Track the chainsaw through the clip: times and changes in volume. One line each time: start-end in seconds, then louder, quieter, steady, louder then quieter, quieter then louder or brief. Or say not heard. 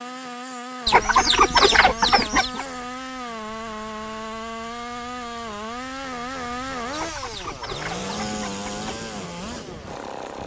0.0-10.4 steady.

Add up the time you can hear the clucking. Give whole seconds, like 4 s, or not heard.
4 s.